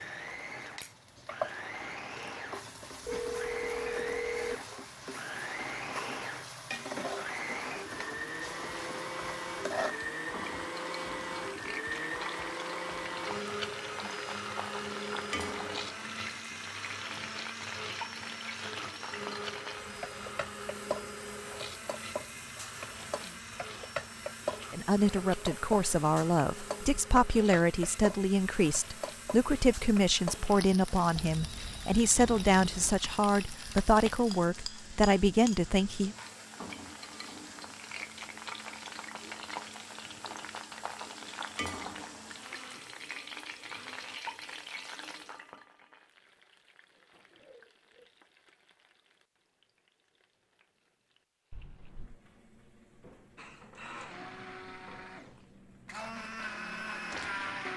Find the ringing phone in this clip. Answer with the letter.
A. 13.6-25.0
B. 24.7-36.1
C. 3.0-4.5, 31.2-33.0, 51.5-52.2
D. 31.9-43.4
C.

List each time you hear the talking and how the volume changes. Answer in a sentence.
You can hear the talking from 24.7 to 36.1 s, at a steady volume.